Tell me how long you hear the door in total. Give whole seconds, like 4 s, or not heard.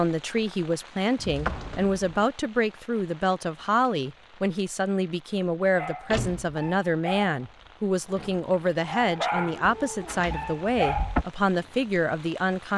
3 s.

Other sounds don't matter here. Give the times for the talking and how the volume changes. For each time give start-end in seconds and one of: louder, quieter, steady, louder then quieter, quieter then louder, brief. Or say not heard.
0.0-12.7 steady.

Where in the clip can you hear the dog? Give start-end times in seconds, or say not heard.
5.7-11.2.